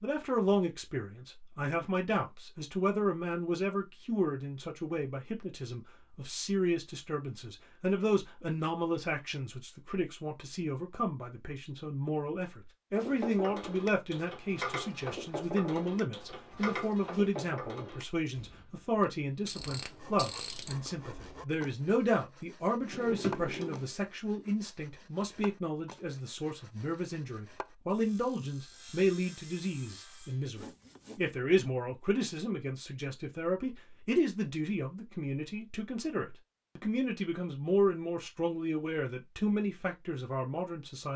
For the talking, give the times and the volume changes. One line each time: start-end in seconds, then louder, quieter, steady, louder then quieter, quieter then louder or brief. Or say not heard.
0.0-41.1 steady.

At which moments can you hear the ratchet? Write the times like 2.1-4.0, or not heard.
12.9-20.9.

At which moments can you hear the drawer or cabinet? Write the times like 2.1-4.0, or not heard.
22.8-23.9.